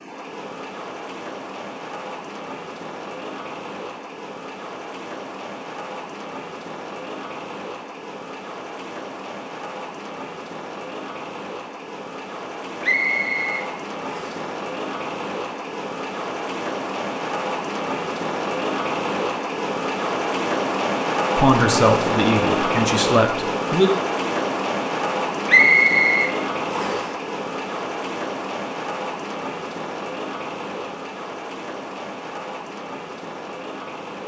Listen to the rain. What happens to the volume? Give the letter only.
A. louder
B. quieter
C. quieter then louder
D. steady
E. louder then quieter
E.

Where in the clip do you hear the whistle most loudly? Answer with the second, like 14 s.
26 s.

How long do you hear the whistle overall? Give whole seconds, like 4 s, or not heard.
3 s.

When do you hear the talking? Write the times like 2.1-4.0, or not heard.
21.4-23.9.